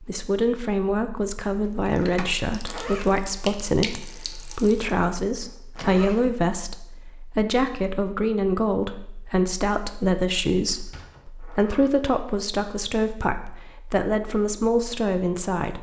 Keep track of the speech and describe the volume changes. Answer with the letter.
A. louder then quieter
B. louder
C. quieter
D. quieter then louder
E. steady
E.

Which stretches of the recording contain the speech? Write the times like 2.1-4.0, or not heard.
0.0-15.7.